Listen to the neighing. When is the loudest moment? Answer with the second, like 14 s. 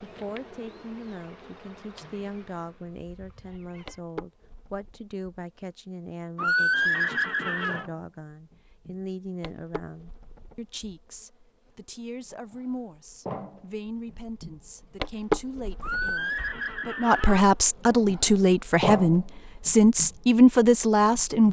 7 s.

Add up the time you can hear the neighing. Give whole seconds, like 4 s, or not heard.
3 s.